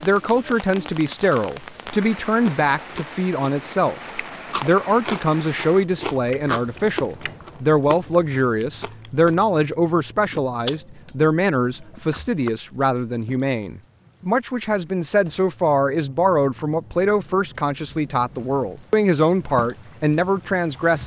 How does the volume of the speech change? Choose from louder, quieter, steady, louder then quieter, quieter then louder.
steady.